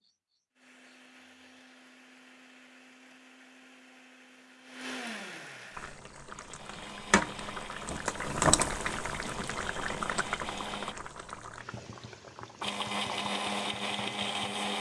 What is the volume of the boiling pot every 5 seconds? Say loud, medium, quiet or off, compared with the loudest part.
off, loud, medium.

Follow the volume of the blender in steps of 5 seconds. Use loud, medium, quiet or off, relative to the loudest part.
quiet, medium, loud.